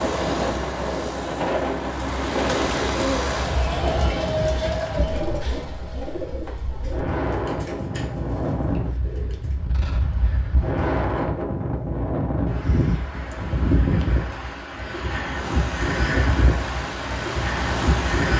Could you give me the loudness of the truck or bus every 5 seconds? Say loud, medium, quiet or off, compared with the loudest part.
loud, off, off, loud.